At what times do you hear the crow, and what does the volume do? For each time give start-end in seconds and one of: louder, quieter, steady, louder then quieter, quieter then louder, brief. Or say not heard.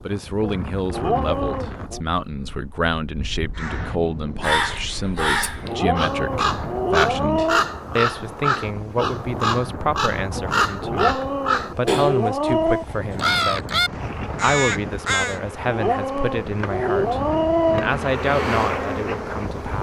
3.5-15.4 steady.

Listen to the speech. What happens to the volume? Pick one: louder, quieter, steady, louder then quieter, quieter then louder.
steady.